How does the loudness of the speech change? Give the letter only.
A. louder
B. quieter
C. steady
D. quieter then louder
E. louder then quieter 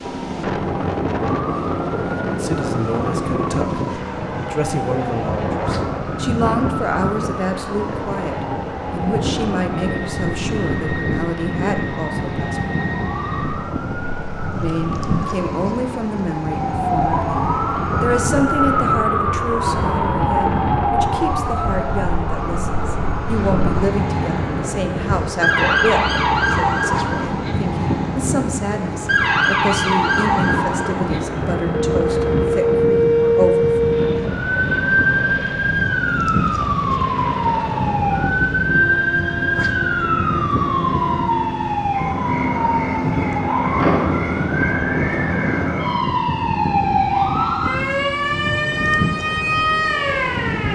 C.